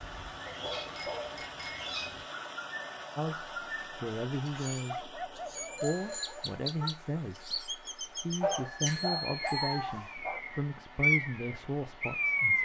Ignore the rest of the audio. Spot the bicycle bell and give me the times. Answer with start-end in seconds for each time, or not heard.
0.8-1.9, 5.8-6.9, 8.4-9.8.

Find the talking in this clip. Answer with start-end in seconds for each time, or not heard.
3.1-12.5.